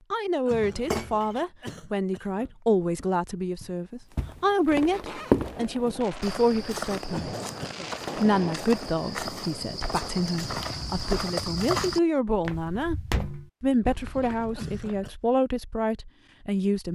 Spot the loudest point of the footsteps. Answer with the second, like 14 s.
5 s.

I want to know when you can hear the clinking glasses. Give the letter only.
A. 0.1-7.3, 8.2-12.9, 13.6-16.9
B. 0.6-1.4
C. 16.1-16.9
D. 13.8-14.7
B.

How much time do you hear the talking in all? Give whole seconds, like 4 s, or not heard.
15 s.